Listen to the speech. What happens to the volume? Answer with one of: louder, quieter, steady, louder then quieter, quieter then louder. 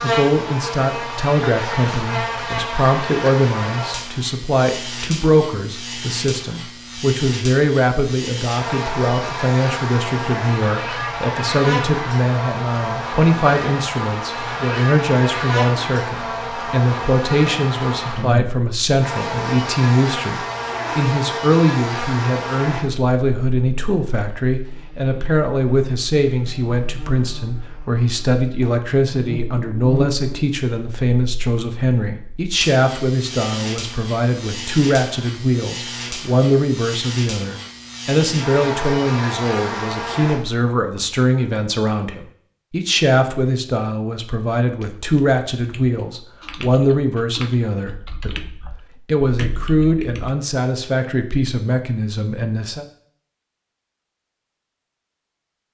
steady.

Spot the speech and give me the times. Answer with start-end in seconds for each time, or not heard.
0.0-52.9.